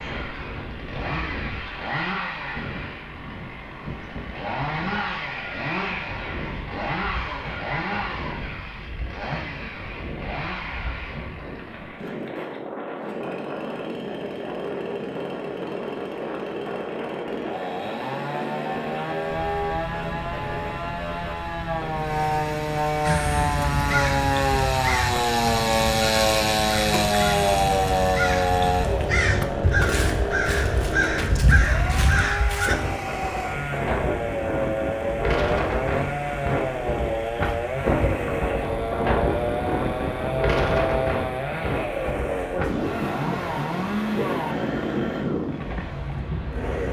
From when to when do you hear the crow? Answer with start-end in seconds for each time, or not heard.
23.1-32.8.